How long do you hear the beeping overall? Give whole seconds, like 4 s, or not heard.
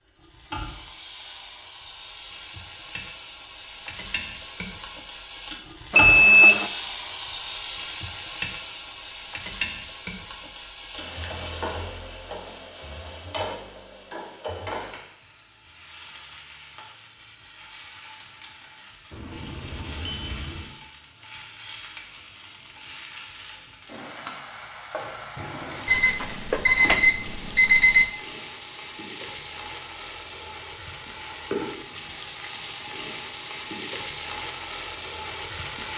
5 s.